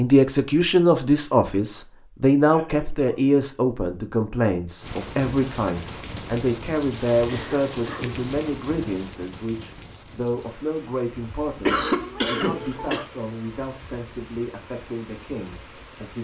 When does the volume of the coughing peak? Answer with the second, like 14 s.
12 s.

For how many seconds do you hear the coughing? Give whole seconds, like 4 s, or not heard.
3 s.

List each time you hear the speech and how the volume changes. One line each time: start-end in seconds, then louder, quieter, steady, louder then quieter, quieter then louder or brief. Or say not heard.
0.0-16.1 quieter.